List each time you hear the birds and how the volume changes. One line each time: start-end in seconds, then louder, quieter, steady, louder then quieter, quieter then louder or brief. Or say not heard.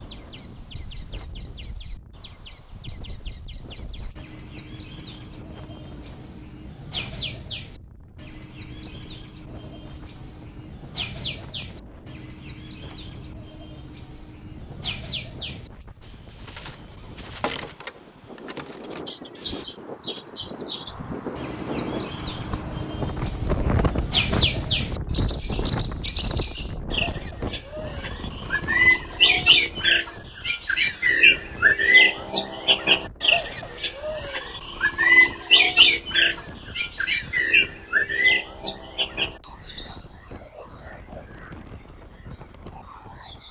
0.0-43.4 louder.